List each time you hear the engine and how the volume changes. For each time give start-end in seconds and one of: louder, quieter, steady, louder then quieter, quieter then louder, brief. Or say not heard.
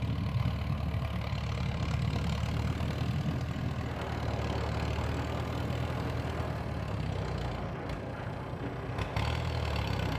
0.0-10.1 steady.